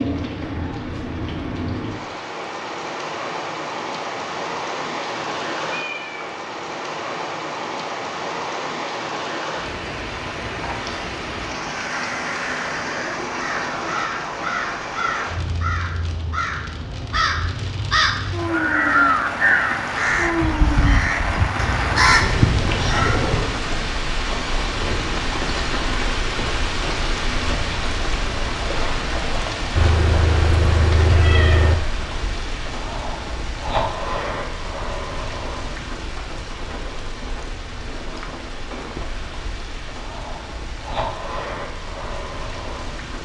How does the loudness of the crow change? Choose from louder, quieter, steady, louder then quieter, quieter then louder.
louder.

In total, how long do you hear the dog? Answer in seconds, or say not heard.
not heard.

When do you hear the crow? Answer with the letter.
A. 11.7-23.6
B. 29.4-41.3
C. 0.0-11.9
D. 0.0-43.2
A.